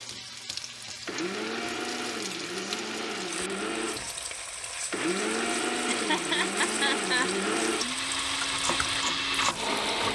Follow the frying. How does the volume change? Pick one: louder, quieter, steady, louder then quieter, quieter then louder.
steady.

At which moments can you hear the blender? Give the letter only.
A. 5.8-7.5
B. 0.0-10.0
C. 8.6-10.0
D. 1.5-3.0
B.